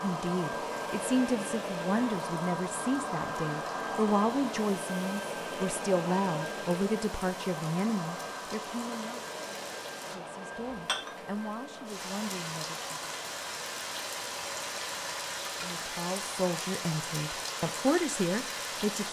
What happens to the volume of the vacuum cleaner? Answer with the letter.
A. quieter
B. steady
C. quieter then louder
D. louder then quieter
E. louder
A.